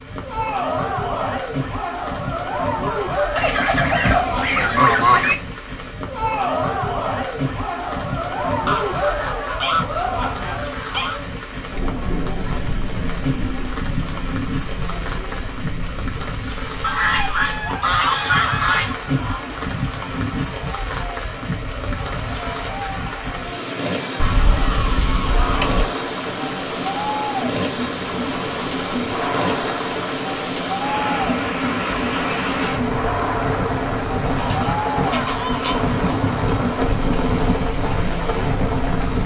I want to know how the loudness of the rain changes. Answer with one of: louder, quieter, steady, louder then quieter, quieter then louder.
louder.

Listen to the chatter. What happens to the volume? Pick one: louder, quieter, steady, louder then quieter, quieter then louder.
quieter then louder.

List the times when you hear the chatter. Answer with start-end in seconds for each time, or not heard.
0.1-39.2.